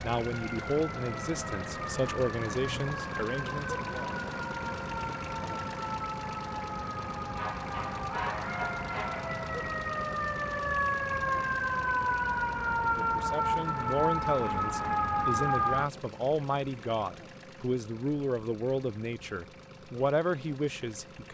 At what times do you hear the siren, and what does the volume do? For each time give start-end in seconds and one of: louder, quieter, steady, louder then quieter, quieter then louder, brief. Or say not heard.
0.0-15.8 louder.